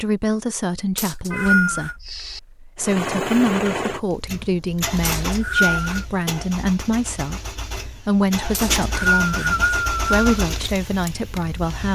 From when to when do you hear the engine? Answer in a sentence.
The engine can be heard from 2.8 to 11.9 s.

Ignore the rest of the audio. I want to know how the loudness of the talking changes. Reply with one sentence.
The loudness of the talking stays about the same.